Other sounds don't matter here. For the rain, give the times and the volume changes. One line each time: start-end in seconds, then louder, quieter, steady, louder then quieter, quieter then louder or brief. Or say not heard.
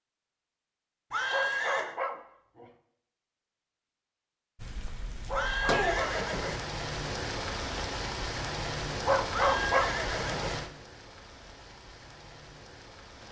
4.5-13.2 quieter.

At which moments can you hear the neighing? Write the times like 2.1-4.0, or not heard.
1.1-1.9, 5.3-6.7, 9.3-10.7.